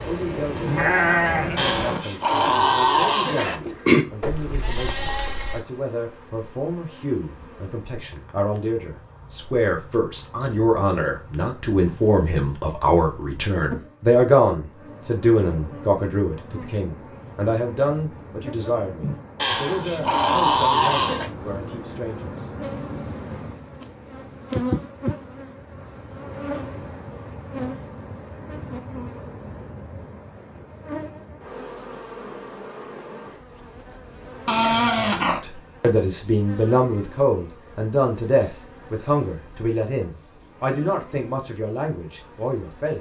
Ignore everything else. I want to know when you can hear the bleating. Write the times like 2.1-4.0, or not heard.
0.0-5.6.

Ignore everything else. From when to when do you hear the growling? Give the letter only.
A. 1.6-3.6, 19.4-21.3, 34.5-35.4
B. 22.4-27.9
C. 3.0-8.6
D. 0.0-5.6
A.